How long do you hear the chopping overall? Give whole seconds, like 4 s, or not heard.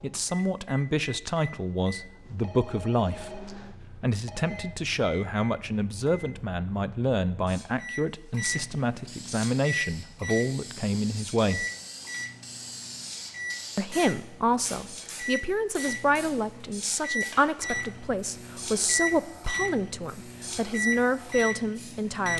not heard.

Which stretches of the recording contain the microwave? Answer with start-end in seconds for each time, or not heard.
0.0-22.3.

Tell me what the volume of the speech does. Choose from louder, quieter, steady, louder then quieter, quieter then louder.
steady.